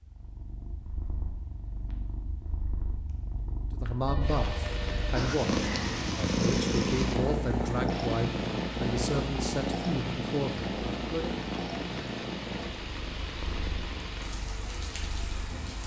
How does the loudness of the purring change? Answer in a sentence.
The loudness of the purring goes up, then down.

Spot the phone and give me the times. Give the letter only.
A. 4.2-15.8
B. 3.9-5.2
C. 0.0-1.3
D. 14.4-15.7
B.